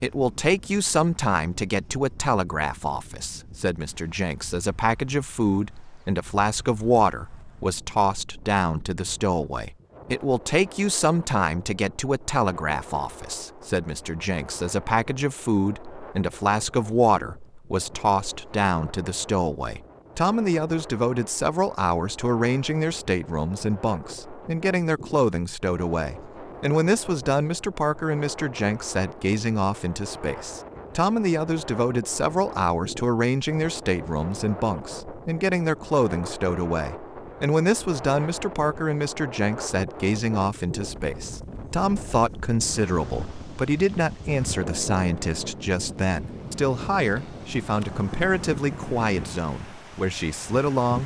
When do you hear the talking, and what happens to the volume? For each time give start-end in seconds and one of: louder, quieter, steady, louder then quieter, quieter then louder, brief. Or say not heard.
0.0-51.0 steady.